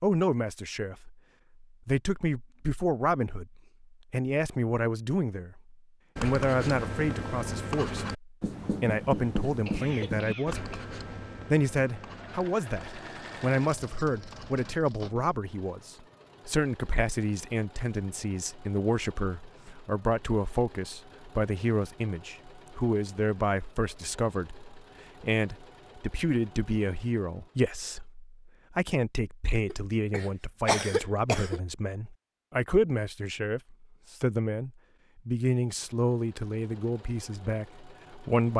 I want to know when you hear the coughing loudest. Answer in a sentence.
The volume of the coughing peaks at 31 seconds.